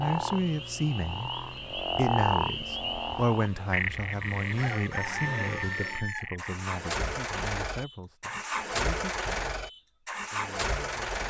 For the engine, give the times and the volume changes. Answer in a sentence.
You can hear the engine from 0.0 to 11.2 s, getting louder.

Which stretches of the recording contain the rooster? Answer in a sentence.
You can hear the rooster from 4.5 to 6.3 s.